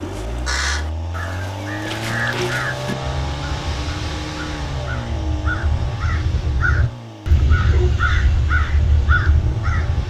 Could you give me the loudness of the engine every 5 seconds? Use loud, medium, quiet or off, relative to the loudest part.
loud, medium.